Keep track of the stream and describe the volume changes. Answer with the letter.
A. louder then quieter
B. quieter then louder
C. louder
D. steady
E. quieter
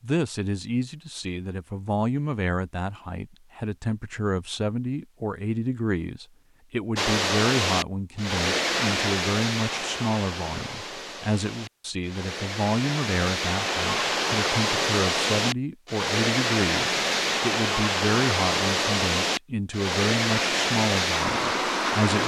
B.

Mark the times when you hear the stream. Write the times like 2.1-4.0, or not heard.
7.0-22.2.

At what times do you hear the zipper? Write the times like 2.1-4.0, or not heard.
not heard.